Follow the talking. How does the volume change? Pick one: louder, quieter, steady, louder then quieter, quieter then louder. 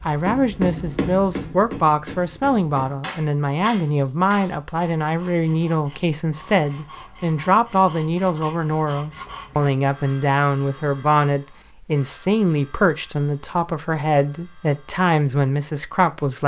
steady.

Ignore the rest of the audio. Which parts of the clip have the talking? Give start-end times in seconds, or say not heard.
0.1-16.4.